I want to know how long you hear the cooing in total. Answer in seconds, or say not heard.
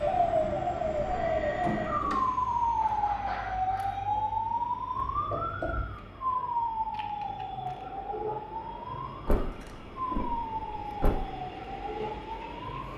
not heard.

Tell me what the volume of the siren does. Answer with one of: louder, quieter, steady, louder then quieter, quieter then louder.
quieter.